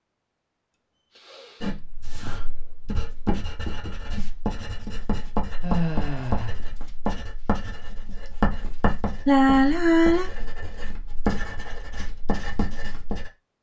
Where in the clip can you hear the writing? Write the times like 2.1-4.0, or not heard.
1.6-13.3.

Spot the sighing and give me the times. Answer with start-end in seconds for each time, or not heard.
1.1-2.5, 5.6-6.5, 9.2-10.3.